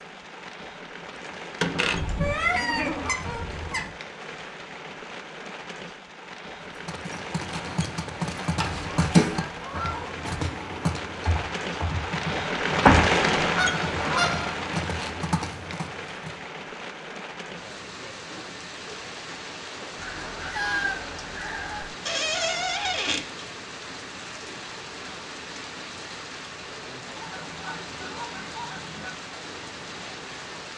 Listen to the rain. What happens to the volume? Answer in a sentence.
The loudness of the rain goes up, then down.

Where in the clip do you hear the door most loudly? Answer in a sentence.
The loudest moment of the door is at 13 seconds.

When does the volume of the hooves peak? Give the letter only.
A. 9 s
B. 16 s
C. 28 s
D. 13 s
A.